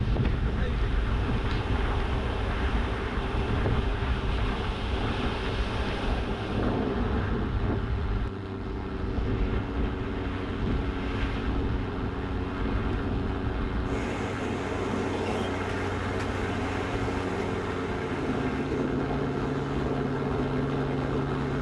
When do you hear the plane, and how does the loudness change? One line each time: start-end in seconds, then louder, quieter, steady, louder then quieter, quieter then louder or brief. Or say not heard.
0.0-21.5 louder.